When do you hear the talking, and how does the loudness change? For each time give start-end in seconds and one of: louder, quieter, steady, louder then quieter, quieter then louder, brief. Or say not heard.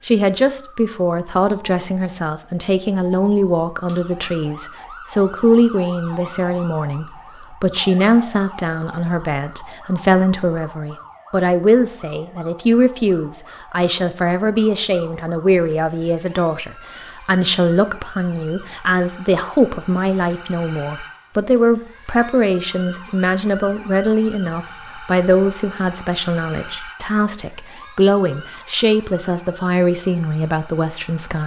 0.0-31.4 steady.